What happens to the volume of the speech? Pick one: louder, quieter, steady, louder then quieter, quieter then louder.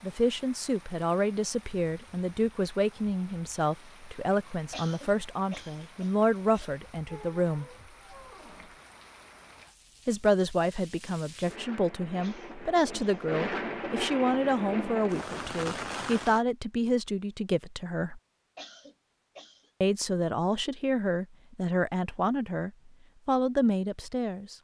steady.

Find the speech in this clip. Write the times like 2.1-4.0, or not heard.
0.0-7.7, 10.1-18.2, 19.8-24.5.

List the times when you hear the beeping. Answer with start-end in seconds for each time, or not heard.
not heard.